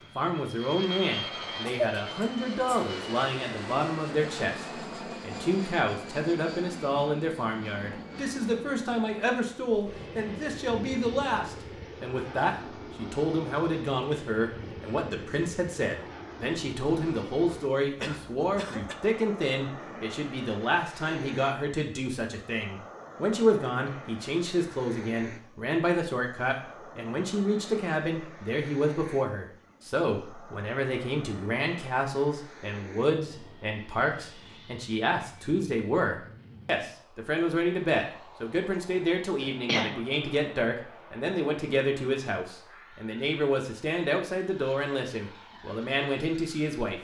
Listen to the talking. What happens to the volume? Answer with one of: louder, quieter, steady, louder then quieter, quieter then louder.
steady.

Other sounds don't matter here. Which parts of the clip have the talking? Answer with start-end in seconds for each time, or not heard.
0.1-46.9.